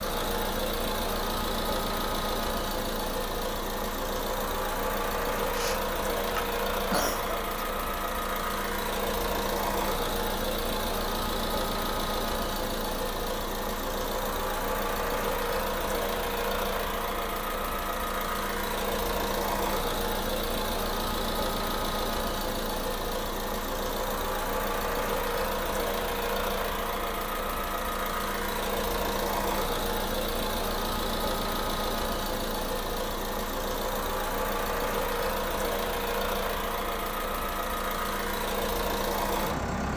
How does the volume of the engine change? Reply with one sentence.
The loudness of the engine stays about the same.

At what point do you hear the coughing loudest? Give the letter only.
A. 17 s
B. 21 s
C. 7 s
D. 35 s
C.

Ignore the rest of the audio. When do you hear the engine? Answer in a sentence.
You can hear the engine from 0.0 to 39.9 s.